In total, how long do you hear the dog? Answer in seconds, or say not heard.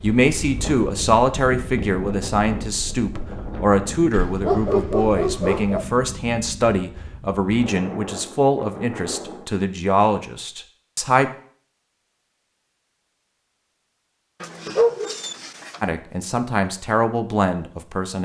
3 s.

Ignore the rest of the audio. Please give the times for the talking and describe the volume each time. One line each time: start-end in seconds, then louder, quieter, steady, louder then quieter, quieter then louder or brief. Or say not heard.
0.0-11.3 steady
15.8-18.2 brief.